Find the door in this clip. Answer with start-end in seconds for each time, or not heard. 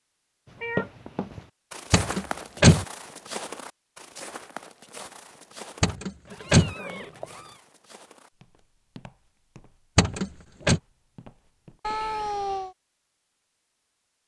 1.9-2.9, 5.8-6.8, 9.9-10.8.